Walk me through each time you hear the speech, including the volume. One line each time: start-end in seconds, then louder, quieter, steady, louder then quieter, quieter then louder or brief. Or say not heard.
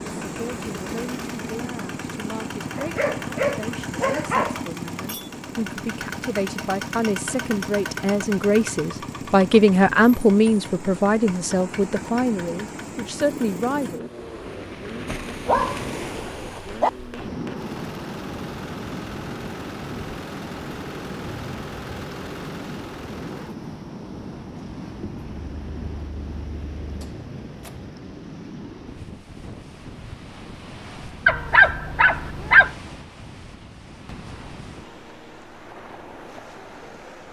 0.2-14.1 louder then quieter.